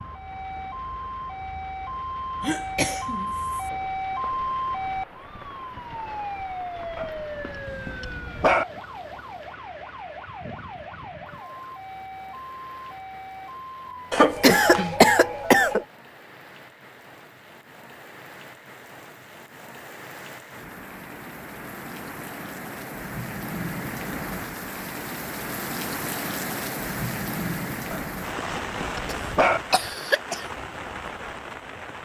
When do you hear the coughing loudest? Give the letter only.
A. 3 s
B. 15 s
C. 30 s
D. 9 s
B.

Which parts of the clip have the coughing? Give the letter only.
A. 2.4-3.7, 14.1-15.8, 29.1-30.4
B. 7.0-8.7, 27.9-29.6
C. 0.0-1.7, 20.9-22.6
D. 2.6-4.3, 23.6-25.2
A.